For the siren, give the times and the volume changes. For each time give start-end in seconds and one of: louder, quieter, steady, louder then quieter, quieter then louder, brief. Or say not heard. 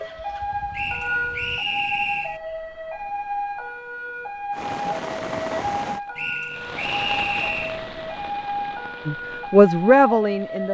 0.0-10.7 steady.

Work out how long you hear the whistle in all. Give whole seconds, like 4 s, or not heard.
3 s.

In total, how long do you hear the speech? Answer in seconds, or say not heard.
2 s.